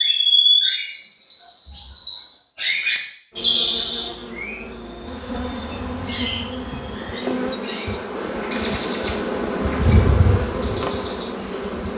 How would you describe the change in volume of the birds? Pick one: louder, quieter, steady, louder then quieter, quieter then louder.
quieter.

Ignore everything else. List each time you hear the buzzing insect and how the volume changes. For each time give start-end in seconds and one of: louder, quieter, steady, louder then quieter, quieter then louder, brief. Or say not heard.
3.3-11.9 louder.